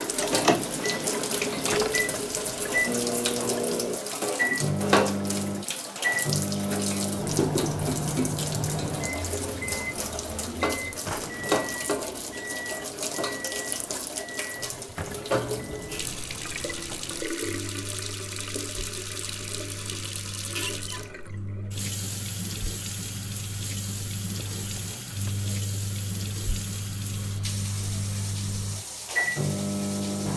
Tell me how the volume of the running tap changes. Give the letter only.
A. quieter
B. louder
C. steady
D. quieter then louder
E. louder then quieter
A.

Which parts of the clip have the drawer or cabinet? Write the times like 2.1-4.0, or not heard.
0.3-2.1, 11.0-11.8, 24.3-25.5.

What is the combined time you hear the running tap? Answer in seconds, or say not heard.
30 s.